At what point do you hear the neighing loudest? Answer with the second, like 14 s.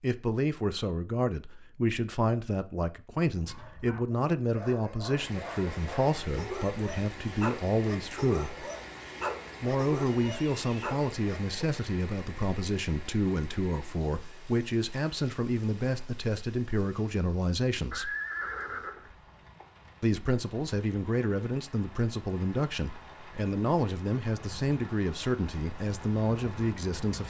18 s.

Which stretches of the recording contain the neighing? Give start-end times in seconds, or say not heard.
10.2-10.8, 17.9-19.6.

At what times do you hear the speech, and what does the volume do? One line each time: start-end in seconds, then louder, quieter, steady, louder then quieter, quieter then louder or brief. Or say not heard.
0.0-8.7 steady
9.6-18.1 steady
20.0-27.2 steady.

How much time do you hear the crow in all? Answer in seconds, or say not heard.
not heard.